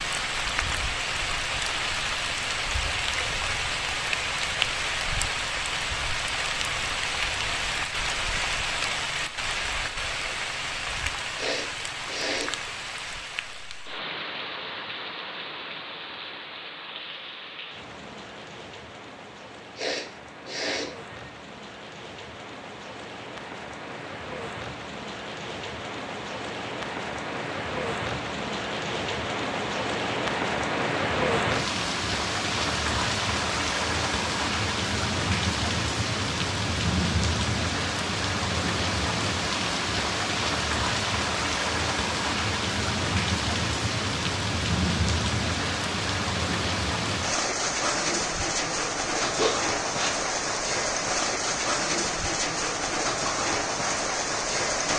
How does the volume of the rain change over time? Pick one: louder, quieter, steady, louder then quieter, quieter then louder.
quieter then louder.